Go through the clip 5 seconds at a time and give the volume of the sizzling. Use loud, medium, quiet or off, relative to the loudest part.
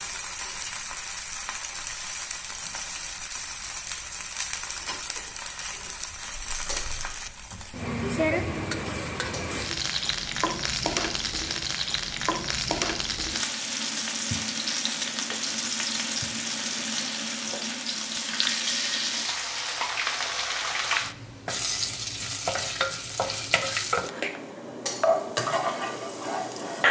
medium, medium, loud, loud, loud, loud.